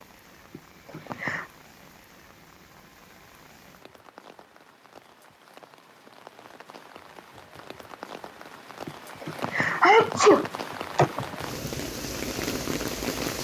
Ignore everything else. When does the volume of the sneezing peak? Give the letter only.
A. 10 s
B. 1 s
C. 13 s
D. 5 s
A.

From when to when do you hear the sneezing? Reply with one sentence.
You can hear the sneezing from 0.5 to 1.5 s and from 8.8 to 11.3 s.